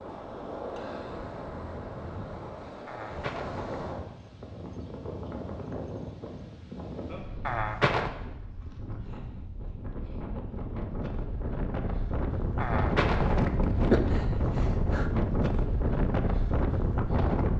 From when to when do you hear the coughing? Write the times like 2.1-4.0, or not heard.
2.9-3.8, 7.5-8.1, 12.6-14.0.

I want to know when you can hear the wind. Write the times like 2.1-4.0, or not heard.
0.0-17.5.